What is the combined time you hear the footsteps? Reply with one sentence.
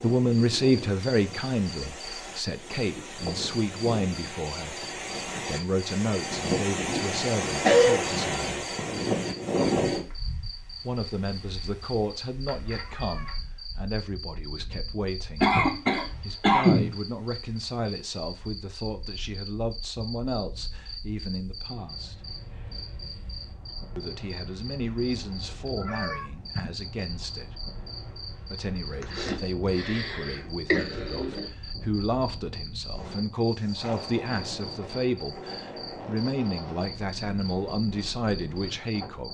You can't hear the footsteps here.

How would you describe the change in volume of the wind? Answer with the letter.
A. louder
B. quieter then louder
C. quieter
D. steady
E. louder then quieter
B.